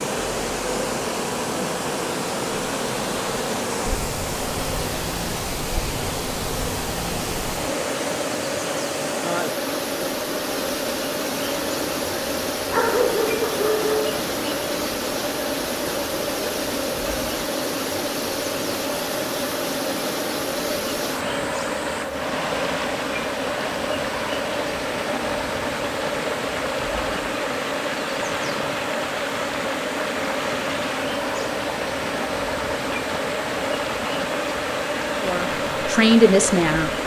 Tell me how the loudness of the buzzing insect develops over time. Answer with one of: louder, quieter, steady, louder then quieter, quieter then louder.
steady.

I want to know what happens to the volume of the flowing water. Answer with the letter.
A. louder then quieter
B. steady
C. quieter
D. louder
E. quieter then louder
B.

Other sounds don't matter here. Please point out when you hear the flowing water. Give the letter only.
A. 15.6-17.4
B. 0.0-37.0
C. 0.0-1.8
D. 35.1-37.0
B.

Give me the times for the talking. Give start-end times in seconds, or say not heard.
35.1-37.0.